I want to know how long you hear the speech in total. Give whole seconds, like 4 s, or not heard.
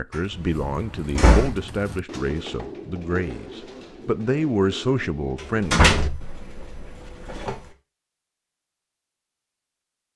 6 s.